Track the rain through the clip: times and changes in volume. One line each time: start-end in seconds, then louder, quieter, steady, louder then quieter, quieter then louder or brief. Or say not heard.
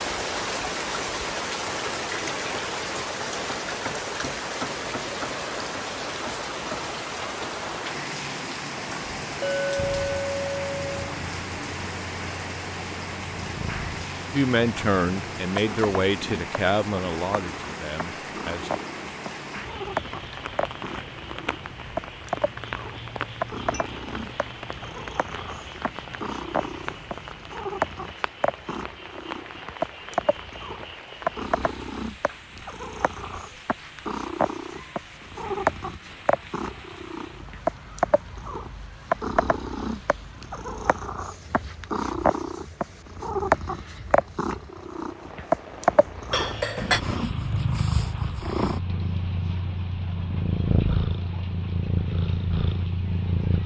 0.0-53.6 quieter.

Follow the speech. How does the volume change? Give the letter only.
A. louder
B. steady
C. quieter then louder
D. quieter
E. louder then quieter
D.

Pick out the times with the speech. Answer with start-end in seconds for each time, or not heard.
14.3-18.8.